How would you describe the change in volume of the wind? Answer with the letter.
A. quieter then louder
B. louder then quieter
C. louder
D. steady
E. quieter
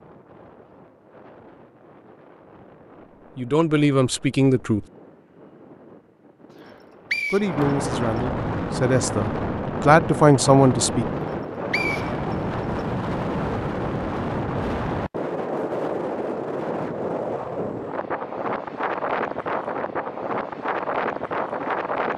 C.